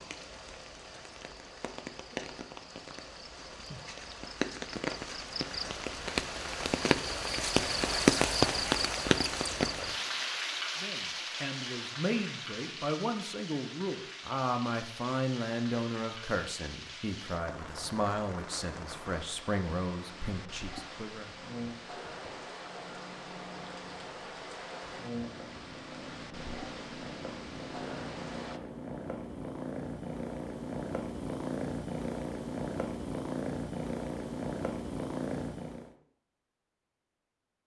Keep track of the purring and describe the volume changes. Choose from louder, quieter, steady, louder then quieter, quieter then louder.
louder.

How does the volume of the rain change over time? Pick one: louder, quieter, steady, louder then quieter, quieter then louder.
louder then quieter.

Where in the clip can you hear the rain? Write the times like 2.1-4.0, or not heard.
0.0-28.6.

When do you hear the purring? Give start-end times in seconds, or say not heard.
20.0-36.0.